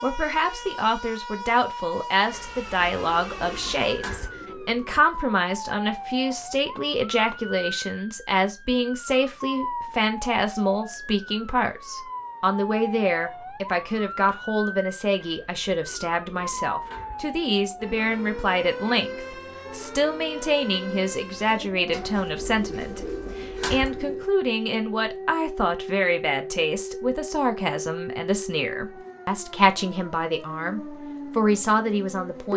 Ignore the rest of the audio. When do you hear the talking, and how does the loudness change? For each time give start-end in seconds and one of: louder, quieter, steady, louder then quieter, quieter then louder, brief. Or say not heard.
0.0-32.5 steady.